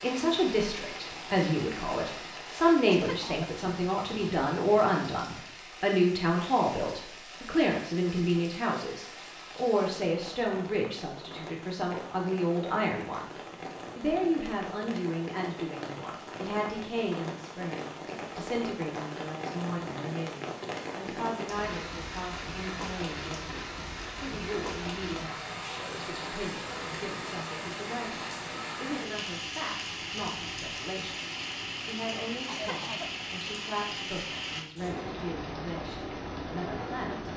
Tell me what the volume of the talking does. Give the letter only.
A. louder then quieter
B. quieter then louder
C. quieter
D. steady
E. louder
C.